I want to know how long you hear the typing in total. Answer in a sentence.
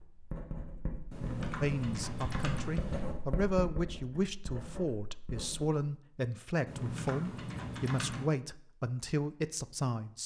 The typing can be heard for 4 seconds in total.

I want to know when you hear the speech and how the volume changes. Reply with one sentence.
The speech can be heard from 1.6 to 10.2 s, at a steady volume.